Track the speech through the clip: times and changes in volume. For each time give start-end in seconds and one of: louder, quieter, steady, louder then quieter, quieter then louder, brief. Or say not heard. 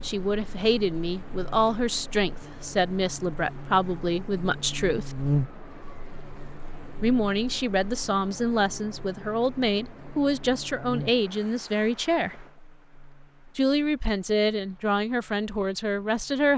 0.0-5.2 steady
7.0-12.4 steady
13.6-16.5 brief.